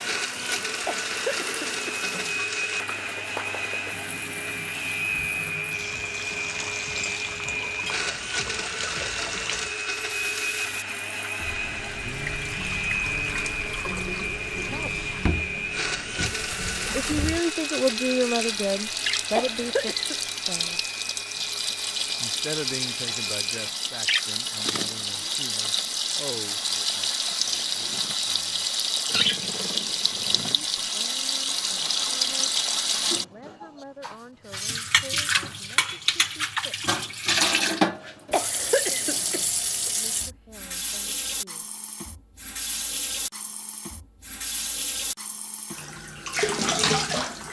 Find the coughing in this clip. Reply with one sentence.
You can hear the coughing from 0.8 to 2.0 s, from 19.3 to 20.1 s and from 38.3 to 39.5 s.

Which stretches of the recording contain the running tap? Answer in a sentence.
The running tap can be heard from 0.0 to 47.4 s.